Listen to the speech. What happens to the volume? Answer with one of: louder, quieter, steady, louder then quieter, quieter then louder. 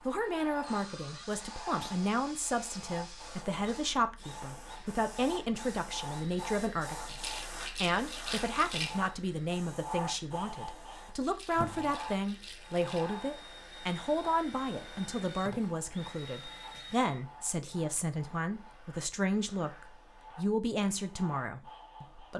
steady.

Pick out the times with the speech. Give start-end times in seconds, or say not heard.
0.1-22.3.